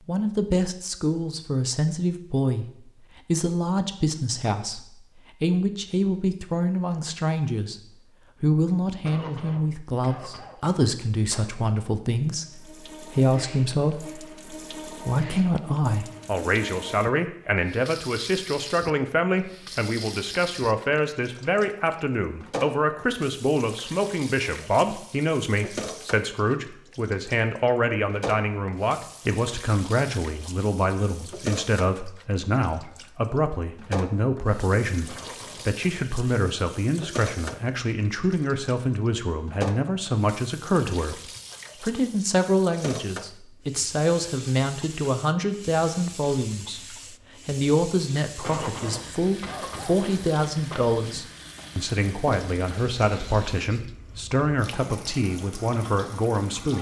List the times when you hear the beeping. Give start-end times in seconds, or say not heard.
not heard.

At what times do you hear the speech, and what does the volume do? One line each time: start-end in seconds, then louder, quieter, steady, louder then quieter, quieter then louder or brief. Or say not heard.
0.1-7.8 steady
8.4-56.7 steady.